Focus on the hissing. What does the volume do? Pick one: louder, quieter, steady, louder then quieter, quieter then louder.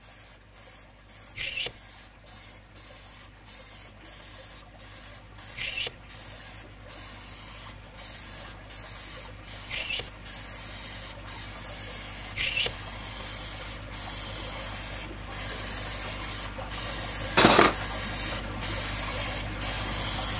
louder.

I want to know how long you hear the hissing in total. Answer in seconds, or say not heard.
20 s.